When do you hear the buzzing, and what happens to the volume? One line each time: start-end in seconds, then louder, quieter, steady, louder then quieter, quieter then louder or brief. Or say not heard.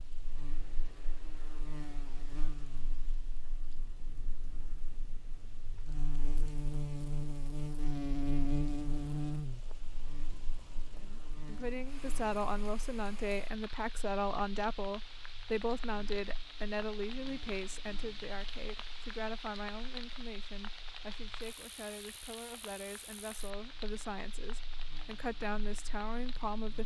0.0-26.8 louder then quieter.